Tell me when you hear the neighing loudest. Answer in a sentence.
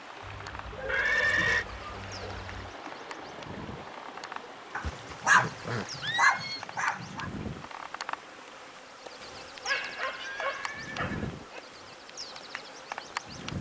The volume of the neighing peaks at 1 second.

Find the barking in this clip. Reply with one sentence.
The barking can be heard from 0.2 to 2.7 s, from 4.8 to 7.3 s and from 9.2 to 11.6 s.